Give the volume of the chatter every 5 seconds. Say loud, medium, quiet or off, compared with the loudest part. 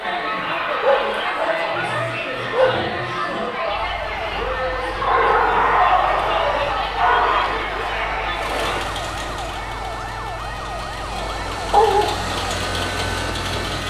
loud, loud, off.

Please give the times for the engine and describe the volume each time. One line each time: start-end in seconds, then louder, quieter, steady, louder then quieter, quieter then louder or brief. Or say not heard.
8.3-13.8 quieter then louder.